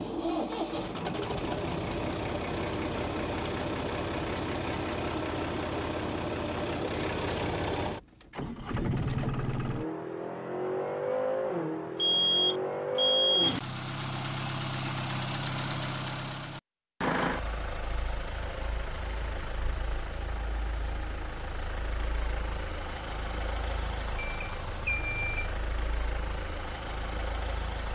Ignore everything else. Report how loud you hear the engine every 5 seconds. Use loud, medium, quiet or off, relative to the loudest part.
loud, loud, loud, loud, medium, medium.